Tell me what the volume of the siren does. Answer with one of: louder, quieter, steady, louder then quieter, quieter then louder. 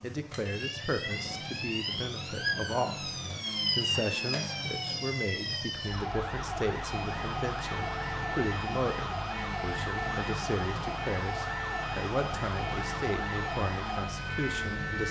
steady.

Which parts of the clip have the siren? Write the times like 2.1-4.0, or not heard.
0.0-15.0.